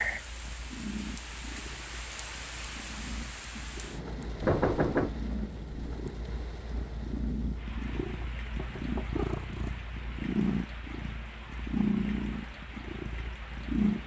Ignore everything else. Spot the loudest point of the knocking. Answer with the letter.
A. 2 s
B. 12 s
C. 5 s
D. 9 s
C.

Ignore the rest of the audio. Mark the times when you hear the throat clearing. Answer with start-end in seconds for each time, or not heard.
not heard.